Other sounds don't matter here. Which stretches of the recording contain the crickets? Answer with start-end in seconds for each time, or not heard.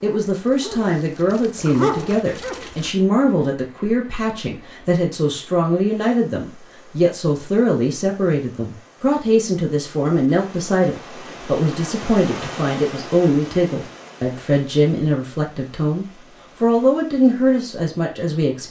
not heard.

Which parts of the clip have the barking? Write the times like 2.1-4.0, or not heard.
0.0-2.9.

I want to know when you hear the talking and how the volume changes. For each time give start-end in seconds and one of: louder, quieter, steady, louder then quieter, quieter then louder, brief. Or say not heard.
0.0-18.6 steady.